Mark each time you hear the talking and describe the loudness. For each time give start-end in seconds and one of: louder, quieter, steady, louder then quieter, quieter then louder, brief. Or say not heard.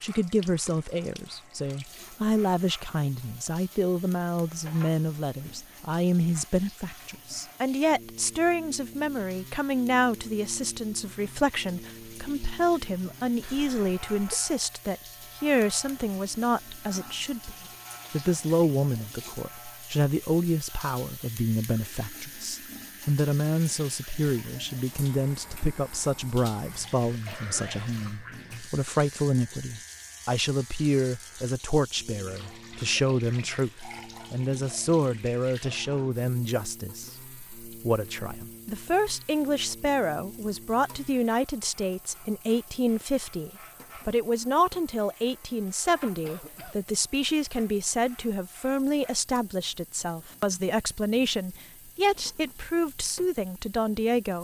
0.0-54.3 steady.